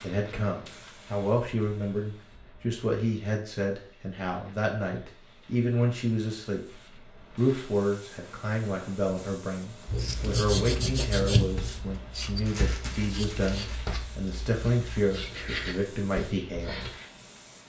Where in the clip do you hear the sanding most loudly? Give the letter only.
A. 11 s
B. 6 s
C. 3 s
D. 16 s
A.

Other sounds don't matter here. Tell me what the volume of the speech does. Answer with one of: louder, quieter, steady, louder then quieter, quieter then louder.
steady.